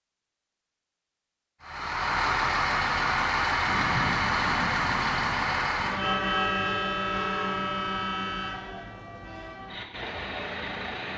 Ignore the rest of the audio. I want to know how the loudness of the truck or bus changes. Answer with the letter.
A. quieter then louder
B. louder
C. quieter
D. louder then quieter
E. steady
C.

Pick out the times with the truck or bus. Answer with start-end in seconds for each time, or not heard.
1.6-11.1.